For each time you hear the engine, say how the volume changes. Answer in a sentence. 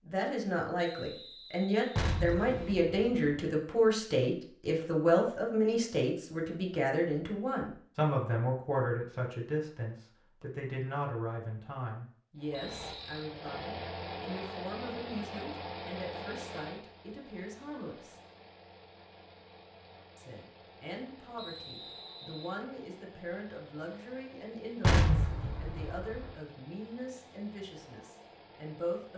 You can hear the engine from 12.3 to 29.1 s, getting quieter.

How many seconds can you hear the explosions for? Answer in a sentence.
You can hear the explosions for 3 seconds altogether.